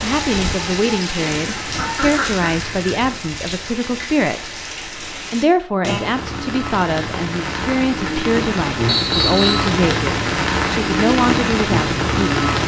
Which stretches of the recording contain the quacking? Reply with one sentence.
The quacking can be heard from 1.4 to 3.1 s.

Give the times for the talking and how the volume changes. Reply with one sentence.
The talking can be heard from 0.0 to 12.5 s, at a steady volume.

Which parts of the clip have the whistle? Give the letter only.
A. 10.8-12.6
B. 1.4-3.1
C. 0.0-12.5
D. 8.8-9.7
D.